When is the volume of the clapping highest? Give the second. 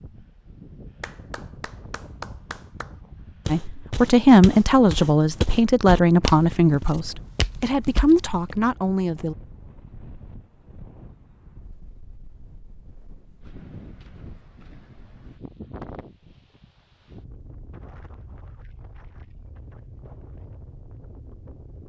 2 s.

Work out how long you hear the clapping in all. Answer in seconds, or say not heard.
2 s.